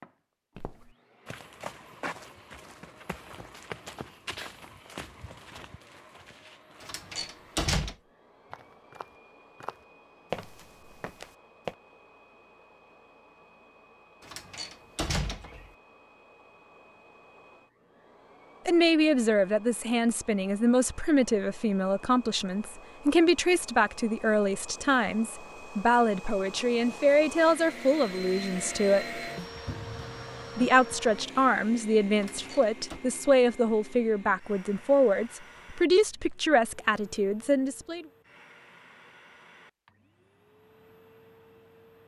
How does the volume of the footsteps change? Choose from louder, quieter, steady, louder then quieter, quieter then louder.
quieter then louder.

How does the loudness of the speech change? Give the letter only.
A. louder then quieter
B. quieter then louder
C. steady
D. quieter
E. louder
C.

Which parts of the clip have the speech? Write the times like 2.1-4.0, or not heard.
18.6-29.2, 30.6-38.0.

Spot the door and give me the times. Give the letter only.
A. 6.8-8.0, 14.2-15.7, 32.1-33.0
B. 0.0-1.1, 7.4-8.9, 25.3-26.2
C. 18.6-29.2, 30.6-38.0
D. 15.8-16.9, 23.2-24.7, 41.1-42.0
A.